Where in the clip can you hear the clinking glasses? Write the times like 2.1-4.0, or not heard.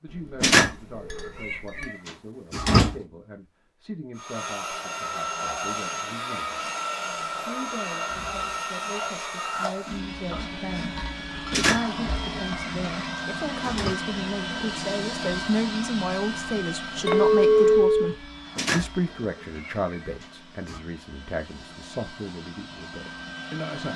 0.1-1.9, 10.3-11.8, 17.1-18.1.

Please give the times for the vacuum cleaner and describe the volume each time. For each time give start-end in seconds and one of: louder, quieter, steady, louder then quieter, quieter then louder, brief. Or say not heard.
4.2-23.9 quieter.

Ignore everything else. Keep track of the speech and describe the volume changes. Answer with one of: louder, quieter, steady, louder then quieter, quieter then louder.
louder then quieter.